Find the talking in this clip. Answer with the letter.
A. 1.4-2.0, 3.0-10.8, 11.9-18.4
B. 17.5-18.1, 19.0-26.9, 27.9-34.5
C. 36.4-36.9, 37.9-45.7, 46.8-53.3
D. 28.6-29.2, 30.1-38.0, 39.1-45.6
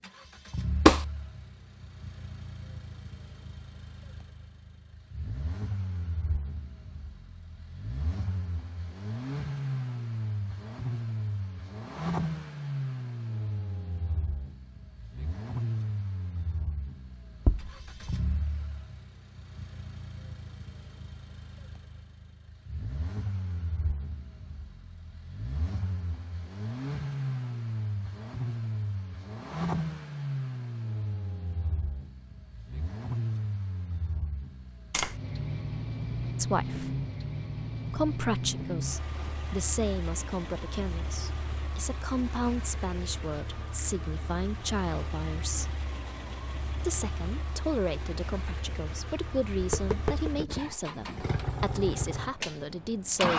C.